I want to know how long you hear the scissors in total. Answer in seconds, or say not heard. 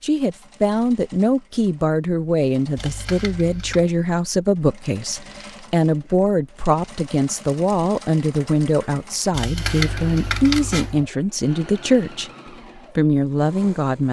3 s.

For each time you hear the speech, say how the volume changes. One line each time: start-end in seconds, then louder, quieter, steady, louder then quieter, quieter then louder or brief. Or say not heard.
0.0-14.0 steady.